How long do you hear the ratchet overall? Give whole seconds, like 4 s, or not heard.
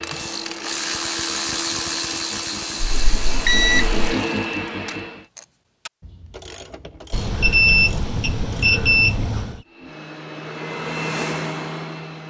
9 s.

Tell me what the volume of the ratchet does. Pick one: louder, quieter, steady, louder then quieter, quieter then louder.
quieter.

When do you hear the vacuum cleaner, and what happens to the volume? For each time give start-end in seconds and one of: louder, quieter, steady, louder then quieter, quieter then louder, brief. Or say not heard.
0.0-5.3 louder
9.7-12.2 brief.